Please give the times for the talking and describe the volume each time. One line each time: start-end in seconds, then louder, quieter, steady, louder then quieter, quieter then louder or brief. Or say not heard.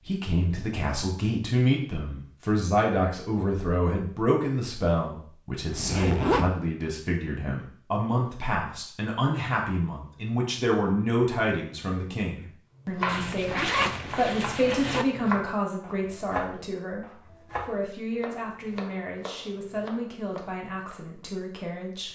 0.1-22.0 quieter.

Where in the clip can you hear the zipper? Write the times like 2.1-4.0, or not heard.
5.7-6.5, 13.1-15.1.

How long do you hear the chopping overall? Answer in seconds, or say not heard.
8 s.